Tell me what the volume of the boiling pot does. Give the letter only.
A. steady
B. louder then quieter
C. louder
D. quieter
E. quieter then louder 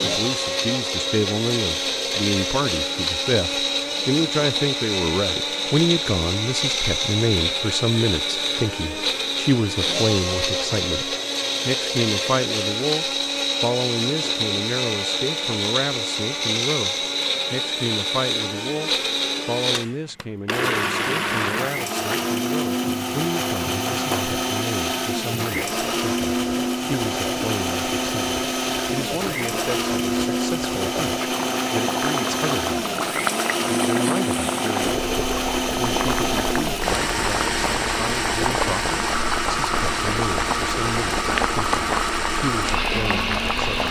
C.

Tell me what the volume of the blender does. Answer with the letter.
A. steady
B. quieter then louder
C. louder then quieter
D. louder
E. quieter
A.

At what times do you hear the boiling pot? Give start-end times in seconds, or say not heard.
21.8-43.8.